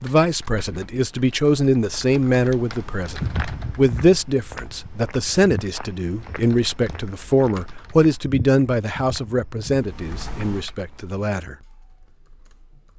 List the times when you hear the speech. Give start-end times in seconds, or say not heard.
0.0-11.6.